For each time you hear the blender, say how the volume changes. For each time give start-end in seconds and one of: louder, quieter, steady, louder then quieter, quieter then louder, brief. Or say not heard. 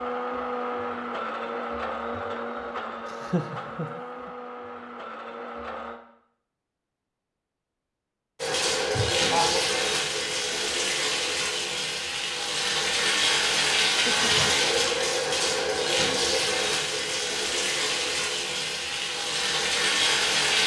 0.0-6.0 quieter.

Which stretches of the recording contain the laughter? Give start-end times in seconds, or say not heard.
3.0-4.3, 8.9-9.7, 14.1-14.5.